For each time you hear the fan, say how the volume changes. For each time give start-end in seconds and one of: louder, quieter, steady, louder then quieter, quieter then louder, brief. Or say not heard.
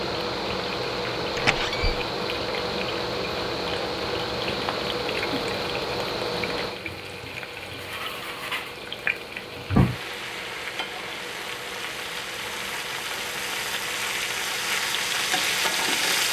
0.0-16.2 quieter.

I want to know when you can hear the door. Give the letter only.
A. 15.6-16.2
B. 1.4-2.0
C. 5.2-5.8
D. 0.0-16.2
B.